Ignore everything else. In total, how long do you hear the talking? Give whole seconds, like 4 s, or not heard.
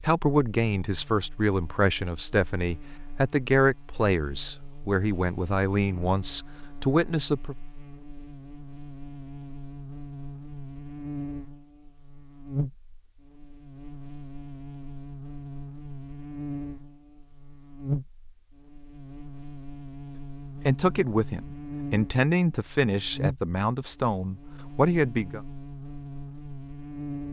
12 s.